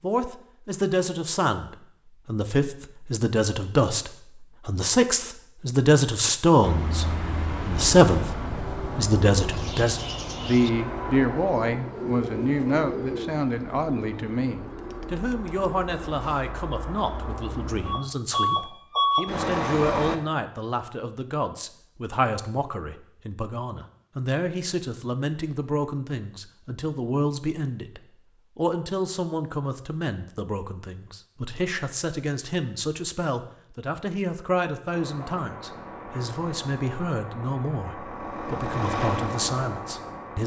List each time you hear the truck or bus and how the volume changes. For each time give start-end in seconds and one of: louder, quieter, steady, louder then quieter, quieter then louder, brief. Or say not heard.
6.6-20.2 quieter then louder
34.9-40.4 louder.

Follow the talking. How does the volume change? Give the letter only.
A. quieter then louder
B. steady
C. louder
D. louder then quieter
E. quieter
E.